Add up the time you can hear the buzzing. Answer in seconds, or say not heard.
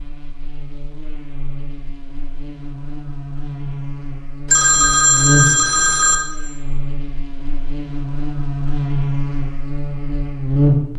11 s.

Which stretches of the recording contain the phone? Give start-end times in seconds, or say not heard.
4.5-6.2.